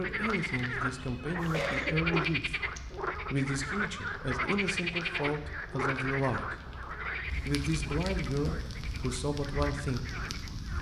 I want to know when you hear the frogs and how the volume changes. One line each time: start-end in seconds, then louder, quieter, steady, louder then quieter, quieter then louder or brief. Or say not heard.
0.0-10.7 quieter.